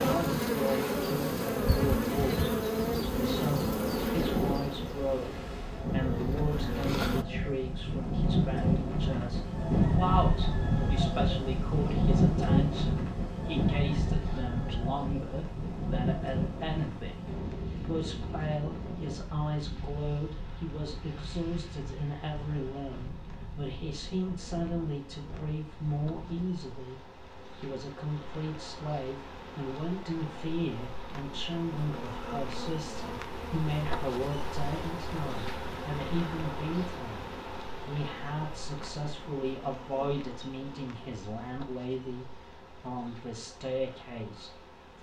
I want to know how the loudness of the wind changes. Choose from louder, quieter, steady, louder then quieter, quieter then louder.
louder then quieter.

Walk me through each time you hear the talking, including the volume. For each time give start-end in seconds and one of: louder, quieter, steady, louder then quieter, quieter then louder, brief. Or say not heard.
0.0-2.5 brief
3.1-44.9 steady.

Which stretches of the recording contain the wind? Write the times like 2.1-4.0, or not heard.
0.0-26.6.